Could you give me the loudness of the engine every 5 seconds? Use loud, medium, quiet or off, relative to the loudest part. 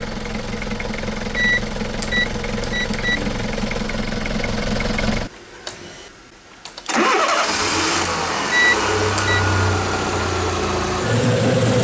medium, loud, loud.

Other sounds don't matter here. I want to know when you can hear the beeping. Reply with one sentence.
You can hear the beeping from 1.4 to 3.1 s and from 8.5 to 9.4 s.